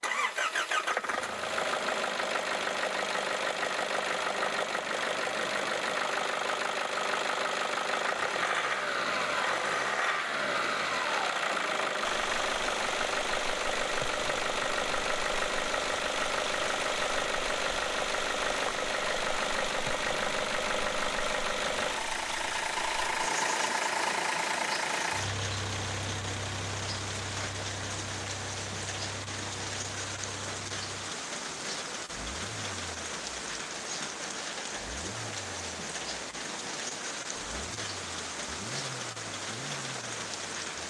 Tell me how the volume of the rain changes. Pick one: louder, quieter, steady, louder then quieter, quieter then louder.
steady.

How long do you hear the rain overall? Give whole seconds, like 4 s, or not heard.
29 s.